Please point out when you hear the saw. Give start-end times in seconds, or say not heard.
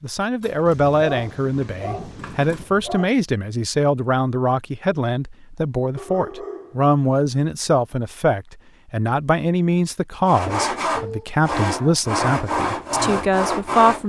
10.2-14.0.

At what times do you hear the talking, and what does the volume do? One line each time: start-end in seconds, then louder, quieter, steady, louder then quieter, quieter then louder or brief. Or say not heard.
0.0-14.0 steady.